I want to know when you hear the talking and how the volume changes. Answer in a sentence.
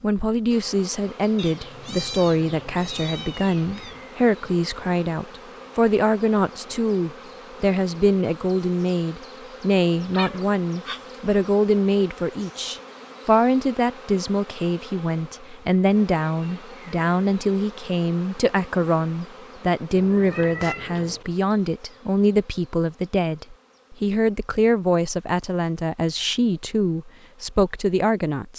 You can hear the talking from 0.0 to 28.5 s, at a steady volume.